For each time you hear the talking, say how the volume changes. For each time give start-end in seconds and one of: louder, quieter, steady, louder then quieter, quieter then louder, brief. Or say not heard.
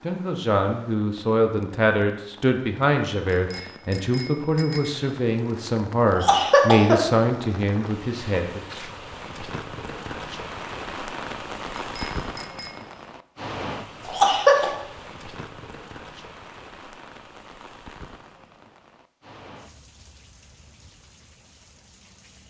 0.0-8.7 steady.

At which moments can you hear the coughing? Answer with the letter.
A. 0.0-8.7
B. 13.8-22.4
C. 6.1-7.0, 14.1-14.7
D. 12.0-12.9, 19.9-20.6
C.